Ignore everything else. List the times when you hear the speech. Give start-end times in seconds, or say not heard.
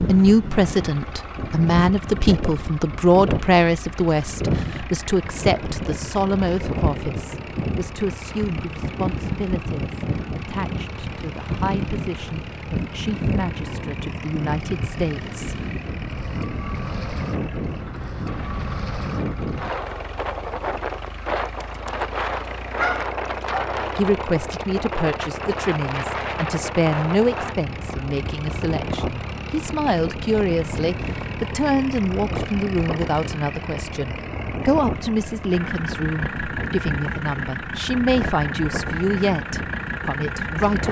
0.0-15.6, 23.9-40.8.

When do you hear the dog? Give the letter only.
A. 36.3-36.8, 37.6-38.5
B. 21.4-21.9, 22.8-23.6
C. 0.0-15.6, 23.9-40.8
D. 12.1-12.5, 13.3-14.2
B.